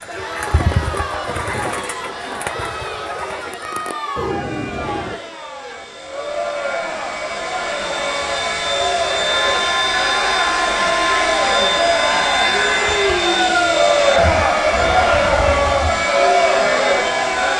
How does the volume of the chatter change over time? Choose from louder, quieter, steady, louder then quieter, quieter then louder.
louder.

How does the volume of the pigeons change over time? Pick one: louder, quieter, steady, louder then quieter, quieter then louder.
quieter then louder.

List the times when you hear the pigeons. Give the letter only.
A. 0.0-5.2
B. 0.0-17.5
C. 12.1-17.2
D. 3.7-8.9
A.